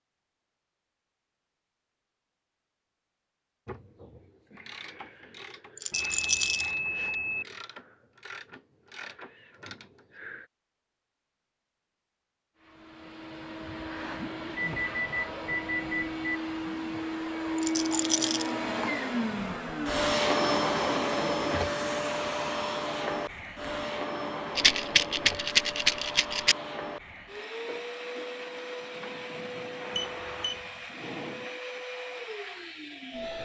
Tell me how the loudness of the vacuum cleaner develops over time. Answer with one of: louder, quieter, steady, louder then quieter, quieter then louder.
louder then quieter.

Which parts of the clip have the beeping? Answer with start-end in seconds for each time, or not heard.
5.9-7.5, 14.6-16.4, 29.9-30.6.